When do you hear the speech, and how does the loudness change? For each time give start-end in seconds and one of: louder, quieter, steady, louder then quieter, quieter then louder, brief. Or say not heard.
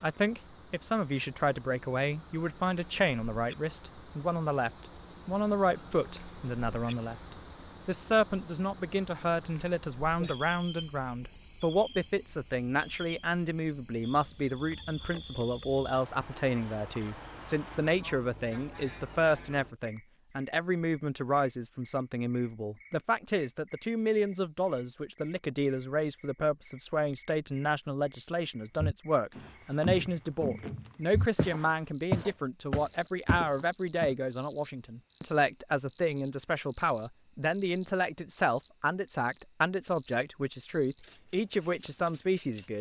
0.0-42.7 steady.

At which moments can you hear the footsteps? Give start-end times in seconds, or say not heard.
28.8-34.1.